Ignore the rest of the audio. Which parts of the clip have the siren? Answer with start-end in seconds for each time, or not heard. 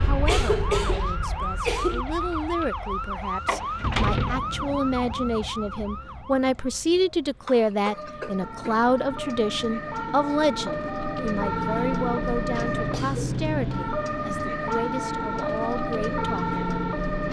0.0-17.2.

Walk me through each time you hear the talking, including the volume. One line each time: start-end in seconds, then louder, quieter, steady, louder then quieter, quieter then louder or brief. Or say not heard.
0.0-16.6 louder then quieter.